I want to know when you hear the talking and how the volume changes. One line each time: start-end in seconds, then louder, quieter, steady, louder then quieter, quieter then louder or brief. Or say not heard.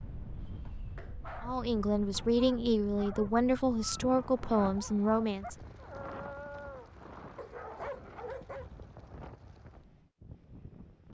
1.4-5.5 steady.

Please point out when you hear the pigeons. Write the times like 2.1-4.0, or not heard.
not heard.